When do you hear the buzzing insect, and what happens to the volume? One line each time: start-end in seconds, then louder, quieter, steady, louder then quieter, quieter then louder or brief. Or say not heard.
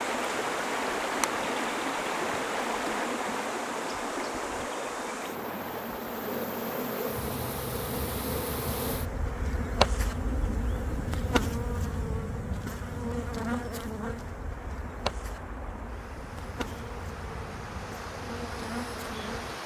0.0-19.6 louder then quieter.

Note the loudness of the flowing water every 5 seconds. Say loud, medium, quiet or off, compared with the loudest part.
loud, medium, quiet, medium.